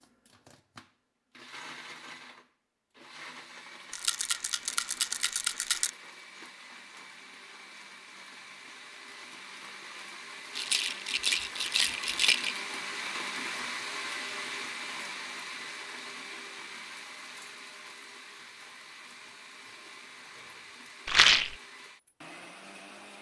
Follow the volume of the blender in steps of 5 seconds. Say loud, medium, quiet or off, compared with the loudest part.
medium, medium, loud, medium, medium.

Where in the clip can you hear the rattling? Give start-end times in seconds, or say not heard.
3.9-5.9, 10.5-12.6, 21.1-21.6.